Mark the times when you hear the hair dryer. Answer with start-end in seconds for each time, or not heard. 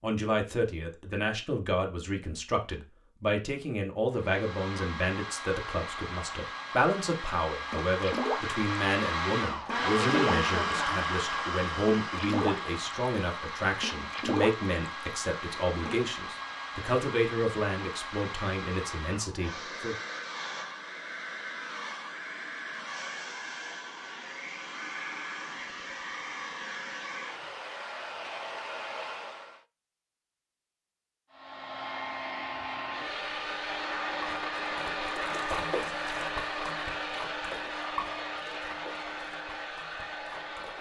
4.1-29.6, 31.3-40.7.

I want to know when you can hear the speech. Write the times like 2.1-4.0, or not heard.
0.0-19.9.